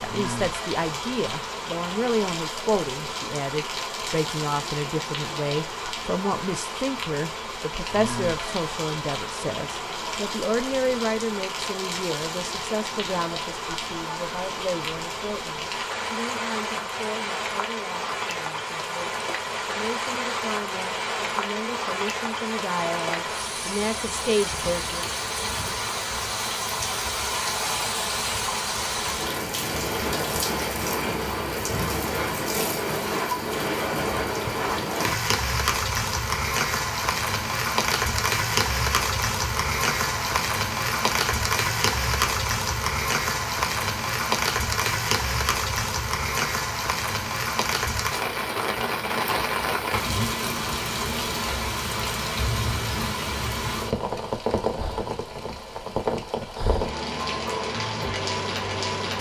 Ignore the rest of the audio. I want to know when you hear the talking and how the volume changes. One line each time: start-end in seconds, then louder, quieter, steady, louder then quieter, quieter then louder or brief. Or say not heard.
0.0-25.1 quieter then louder.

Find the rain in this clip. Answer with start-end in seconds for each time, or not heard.
0.0-59.1.